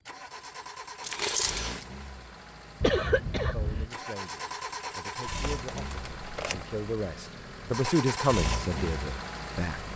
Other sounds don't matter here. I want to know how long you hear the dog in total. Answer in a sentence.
You can't hear the dog here.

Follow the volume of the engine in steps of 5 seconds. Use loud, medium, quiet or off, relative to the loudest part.
medium, loud.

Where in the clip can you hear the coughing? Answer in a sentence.
You can hear the coughing from 2.8 to 3.9 s.